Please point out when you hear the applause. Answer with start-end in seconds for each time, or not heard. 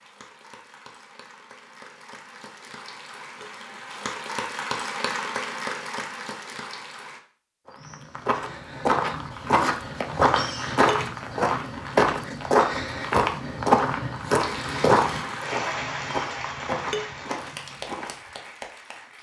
0.0-7.2, 14.3-19.1.